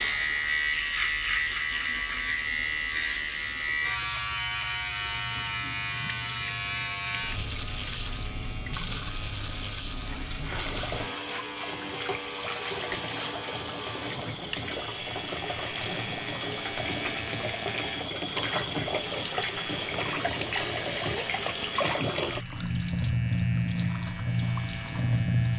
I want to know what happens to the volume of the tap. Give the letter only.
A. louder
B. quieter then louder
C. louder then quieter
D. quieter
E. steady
A.